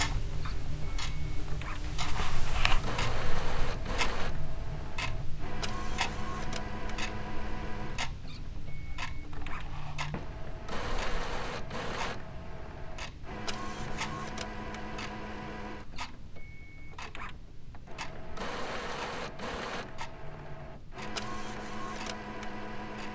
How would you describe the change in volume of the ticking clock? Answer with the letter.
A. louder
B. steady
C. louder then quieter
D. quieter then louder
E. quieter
E.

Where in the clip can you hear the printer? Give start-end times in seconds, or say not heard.
0.2-23.0.